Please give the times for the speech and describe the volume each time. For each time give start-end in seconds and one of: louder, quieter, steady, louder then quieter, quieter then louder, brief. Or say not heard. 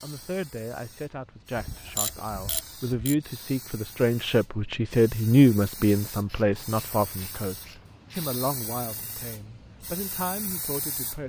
0.0-11.2 louder then quieter.